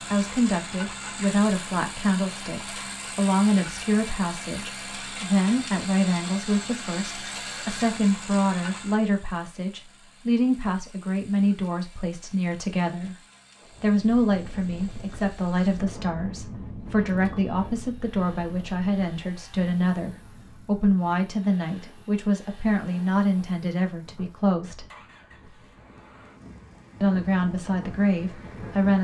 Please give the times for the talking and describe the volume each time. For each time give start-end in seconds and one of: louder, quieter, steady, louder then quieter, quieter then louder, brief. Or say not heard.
0.1-13.2 steady
13.8-24.9 steady
27.0-29.0 brief.